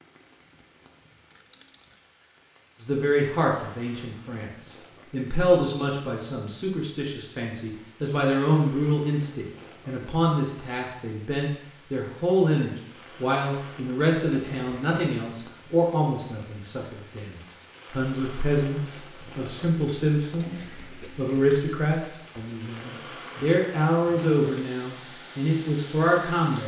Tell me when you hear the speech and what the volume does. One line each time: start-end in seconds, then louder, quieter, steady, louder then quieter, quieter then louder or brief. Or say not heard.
2.8-26.6 steady.